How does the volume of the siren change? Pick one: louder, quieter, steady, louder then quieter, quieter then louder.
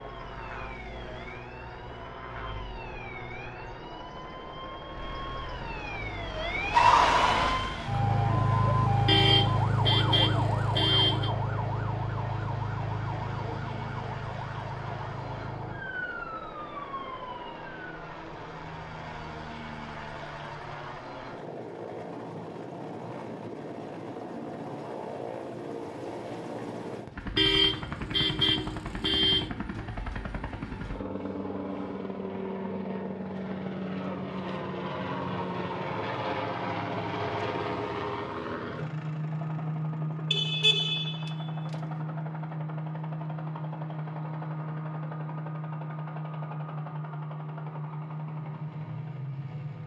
louder then quieter.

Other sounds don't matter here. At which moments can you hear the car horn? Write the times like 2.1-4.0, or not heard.
9.1-11.3, 27.4-29.5, 40.3-41.4.